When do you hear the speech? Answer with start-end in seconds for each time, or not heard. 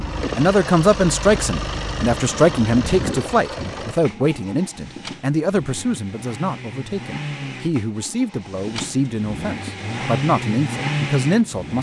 0.0-11.7.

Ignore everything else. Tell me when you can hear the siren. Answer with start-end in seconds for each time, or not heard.
not heard.